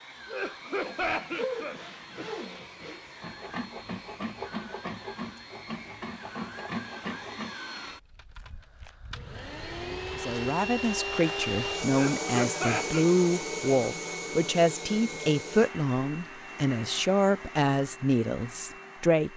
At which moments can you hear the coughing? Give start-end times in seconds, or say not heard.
0.2-2.5, 11.9-13.1.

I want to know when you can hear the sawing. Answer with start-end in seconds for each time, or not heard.
0.7-7.5.